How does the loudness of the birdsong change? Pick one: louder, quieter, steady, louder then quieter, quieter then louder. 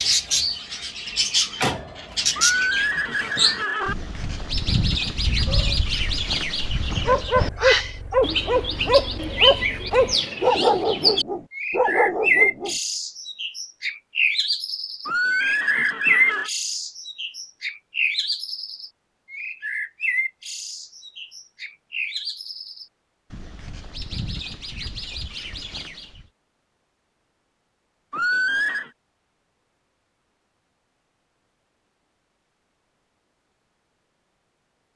quieter.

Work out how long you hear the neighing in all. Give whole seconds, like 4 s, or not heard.
4 s.